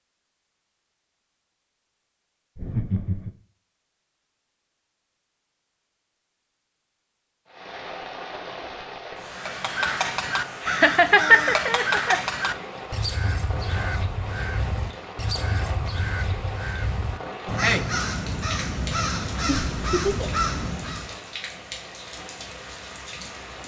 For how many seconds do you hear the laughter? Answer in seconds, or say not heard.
3 s.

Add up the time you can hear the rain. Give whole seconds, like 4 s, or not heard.
16 s.